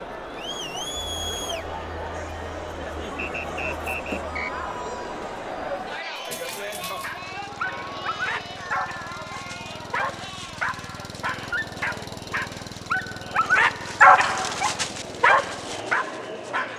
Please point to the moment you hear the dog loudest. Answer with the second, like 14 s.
14 s.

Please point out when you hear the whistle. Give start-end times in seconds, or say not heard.
3.1-4.5.